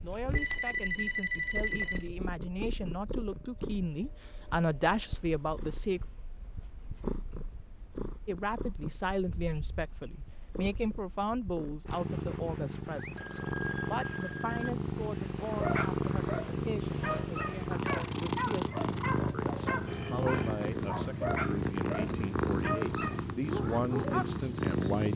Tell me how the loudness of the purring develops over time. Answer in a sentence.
The volume of the purring goes up.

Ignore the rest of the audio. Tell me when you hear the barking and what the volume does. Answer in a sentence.
The barking can be heard from 15.6 to 24.4 s, at a steady volume.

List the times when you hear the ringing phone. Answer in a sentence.
You can hear the ringing phone from 0.3 to 2.1 s, from 12.9 to 14.7 s and from 19.9 to 20.6 s.